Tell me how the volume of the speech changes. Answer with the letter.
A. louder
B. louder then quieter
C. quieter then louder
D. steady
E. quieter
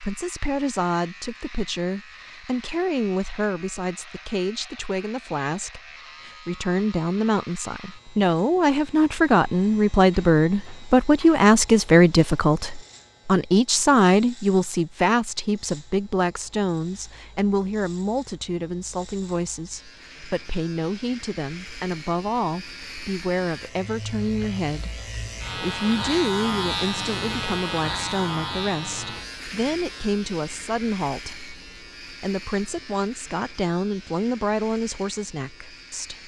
B.